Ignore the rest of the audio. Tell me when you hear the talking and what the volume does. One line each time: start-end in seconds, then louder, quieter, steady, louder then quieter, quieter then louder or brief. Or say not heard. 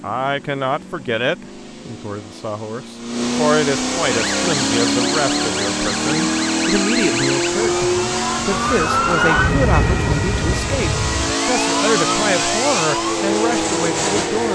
0.0-14.5 steady.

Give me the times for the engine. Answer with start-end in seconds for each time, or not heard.
0.0-14.5.